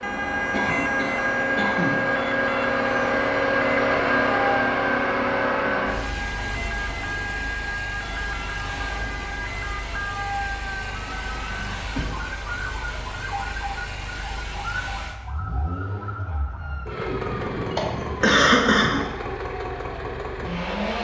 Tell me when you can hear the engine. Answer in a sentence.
You can hear the engine from 0.0 to 21.0 s.